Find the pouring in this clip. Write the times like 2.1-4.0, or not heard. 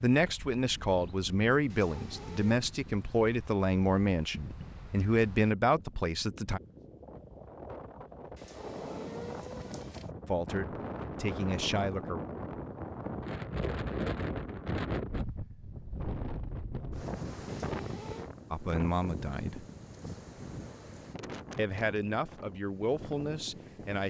4.3-4.9.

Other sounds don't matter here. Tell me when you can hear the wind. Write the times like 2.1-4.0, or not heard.
0.1-24.0.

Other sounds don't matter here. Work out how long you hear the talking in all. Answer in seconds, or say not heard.
12 s.